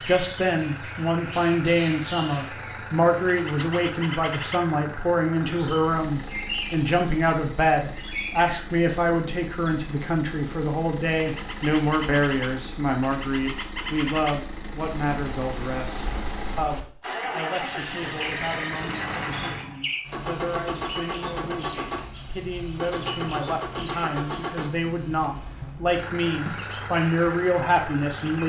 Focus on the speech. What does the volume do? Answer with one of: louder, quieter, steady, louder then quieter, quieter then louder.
quieter then louder.